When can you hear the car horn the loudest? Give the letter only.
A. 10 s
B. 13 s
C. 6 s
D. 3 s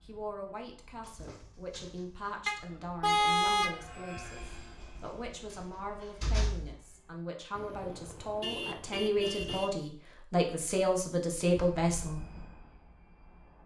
D.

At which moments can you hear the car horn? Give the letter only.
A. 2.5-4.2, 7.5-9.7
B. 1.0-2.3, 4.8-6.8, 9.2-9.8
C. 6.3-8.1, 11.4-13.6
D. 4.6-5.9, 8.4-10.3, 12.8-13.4
A.